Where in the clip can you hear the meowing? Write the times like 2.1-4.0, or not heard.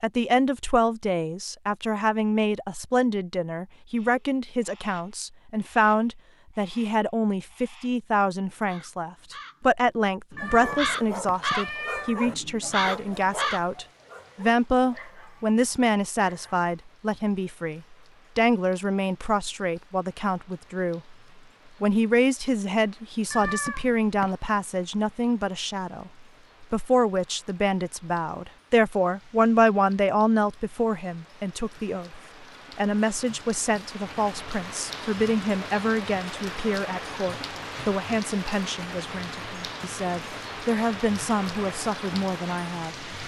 10.3-12.3, 23.3-24.4.